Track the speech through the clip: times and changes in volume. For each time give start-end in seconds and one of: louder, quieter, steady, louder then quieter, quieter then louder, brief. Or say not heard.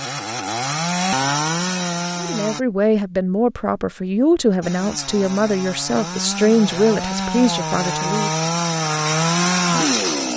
2.1-8.3 steady.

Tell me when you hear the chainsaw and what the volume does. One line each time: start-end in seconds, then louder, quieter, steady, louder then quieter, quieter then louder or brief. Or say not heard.
0.0-2.6 brief
4.6-10.3 louder.